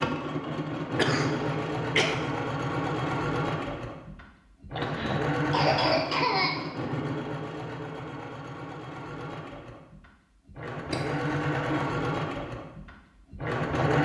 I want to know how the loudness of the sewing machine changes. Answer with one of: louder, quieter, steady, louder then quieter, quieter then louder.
quieter then louder.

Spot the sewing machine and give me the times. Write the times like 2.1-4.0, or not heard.
0.0-14.0.